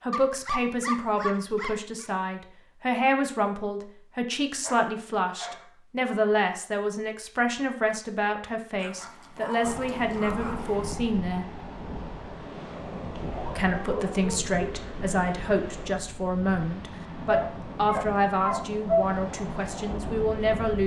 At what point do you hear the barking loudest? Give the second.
19 s.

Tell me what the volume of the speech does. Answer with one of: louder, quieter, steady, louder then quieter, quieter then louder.
steady.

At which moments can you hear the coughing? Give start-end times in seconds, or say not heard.
not heard.